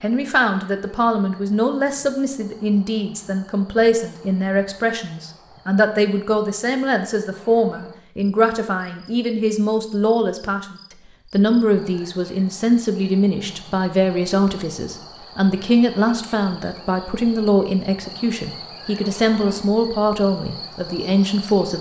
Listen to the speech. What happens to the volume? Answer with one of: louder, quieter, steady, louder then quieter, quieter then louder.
steady.